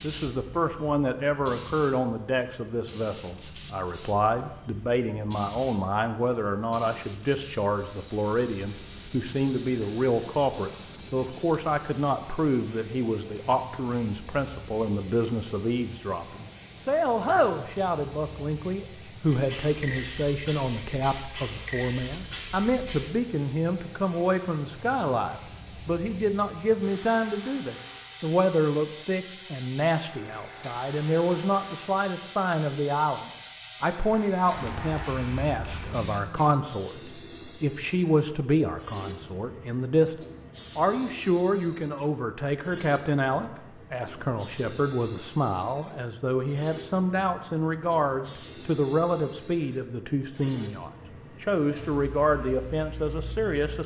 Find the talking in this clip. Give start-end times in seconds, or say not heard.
0.0-40.1, 40.8-53.8.